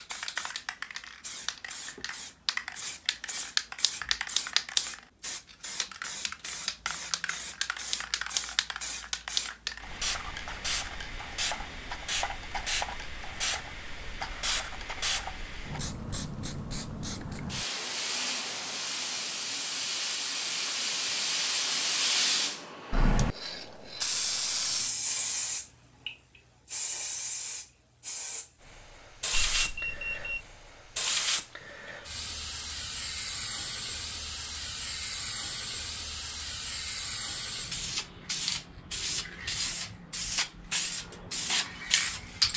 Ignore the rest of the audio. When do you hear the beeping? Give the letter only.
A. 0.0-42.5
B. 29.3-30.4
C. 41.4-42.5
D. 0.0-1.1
B.